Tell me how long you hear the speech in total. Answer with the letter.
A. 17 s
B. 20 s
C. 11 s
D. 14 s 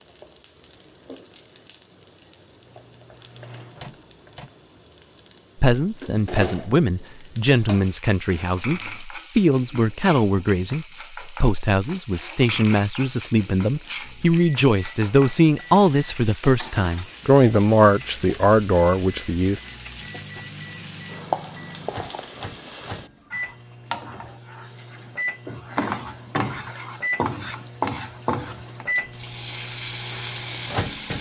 D.